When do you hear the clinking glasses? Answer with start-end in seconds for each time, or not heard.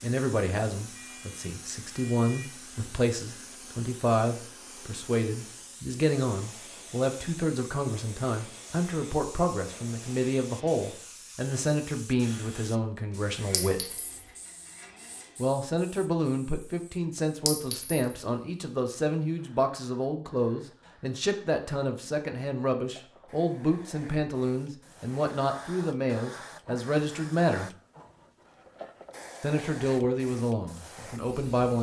13.5-14.2, 17.4-18.1.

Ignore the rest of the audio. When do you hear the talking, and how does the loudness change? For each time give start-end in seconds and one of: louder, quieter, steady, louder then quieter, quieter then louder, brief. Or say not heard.
0.0-13.8 steady
15.3-27.7 steady
29.4-31.7 brief.